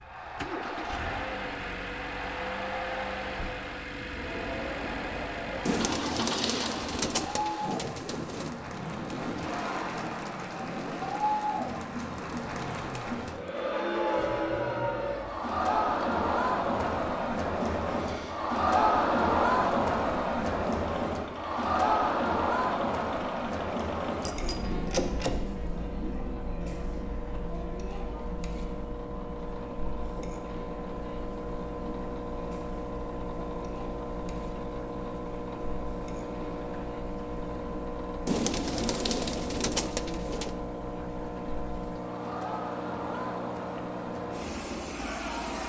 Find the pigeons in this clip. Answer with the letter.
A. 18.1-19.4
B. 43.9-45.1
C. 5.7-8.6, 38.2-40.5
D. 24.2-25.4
C.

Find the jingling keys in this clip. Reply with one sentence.
You can hear the jingling keys from 24.2 to 25.4 s.